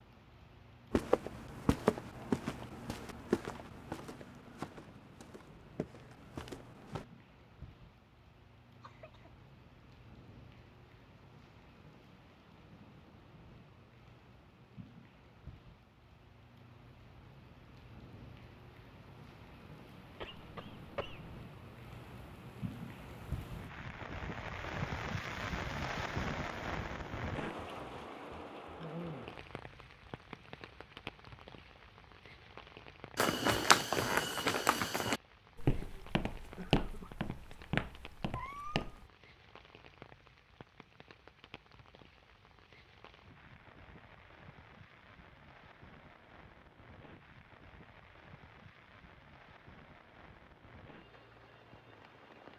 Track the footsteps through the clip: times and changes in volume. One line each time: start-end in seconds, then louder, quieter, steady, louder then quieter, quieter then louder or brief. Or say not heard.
0.9-7.0 quieter
33.1-39.0 quieter.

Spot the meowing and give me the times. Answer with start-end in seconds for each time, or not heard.
38.3-39.0.